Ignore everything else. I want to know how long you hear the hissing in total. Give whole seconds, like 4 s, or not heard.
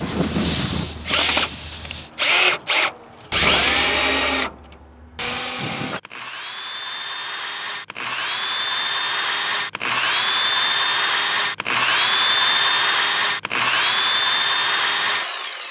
2 s.